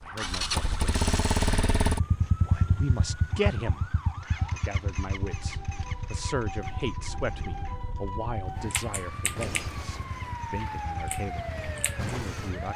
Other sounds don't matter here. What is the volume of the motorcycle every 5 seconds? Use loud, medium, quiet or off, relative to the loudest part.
loud, medium, quiet.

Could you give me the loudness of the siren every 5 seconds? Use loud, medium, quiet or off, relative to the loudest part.
medium, loud, loud.